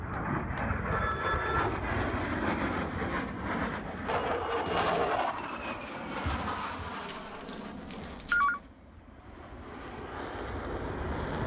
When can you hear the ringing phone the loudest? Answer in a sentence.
The volume of the ringing phone peaks at 8 seconds.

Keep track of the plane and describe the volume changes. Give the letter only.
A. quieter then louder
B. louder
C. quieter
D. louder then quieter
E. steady
C.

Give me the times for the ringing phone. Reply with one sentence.
The ringing phone can be heard from 0.8 to 1.7 s and from 7.0 to 8.6 s.